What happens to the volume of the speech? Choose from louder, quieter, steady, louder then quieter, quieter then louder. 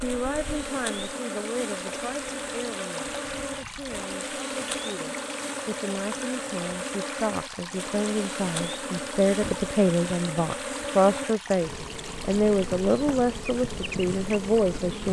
louder.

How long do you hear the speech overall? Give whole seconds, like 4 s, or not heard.
15 s.